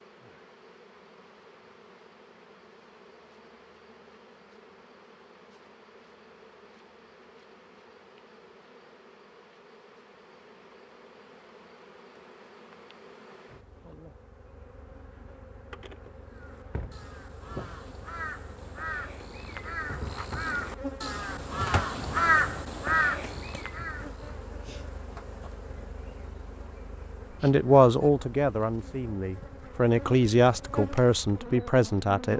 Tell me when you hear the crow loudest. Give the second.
22 s.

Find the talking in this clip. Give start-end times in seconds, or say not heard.
27.4-32.3.